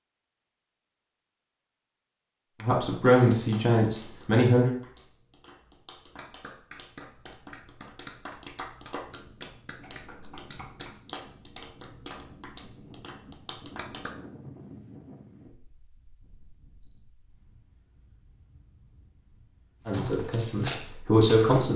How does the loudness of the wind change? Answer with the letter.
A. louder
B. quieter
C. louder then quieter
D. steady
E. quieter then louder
C.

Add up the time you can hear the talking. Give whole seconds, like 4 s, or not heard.
4 s.